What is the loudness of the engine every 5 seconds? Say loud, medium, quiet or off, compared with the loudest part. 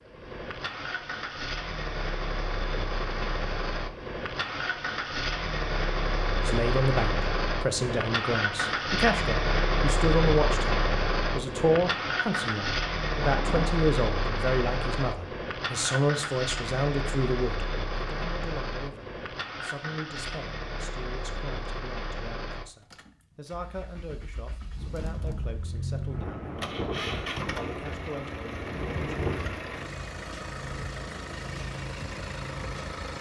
medium, loud, loud, medium, medium, medium, medium.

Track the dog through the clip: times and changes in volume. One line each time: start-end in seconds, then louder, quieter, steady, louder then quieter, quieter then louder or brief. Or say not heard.
not heard.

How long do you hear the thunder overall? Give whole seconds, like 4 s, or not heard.
4 s.